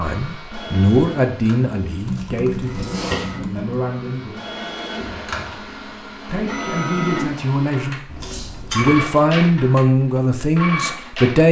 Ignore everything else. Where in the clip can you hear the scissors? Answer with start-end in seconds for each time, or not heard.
1.9-3.4, 8.1-9.1.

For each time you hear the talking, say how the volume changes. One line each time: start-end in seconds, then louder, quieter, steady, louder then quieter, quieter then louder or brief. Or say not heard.
0.0-11.4 quieter then louder.